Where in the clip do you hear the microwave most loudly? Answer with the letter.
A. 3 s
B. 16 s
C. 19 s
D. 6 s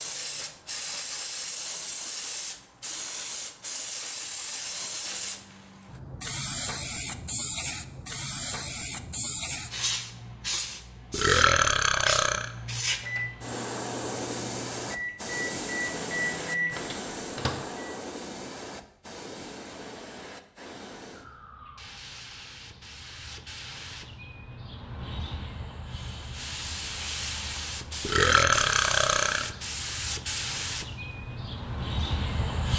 B.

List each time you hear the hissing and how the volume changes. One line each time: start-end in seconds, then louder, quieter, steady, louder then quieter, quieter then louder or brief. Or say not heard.
0.0-32.7 quieter then louder.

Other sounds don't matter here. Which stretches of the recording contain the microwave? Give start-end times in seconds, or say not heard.
12.8-17.9.